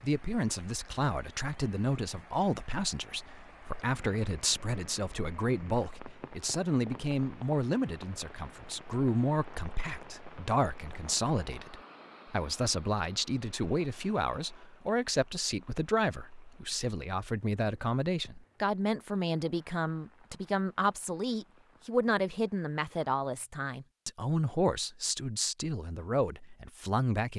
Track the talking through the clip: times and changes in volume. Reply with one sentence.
The talking can be heard from 0.0 to 27.3 s, at a steady volume.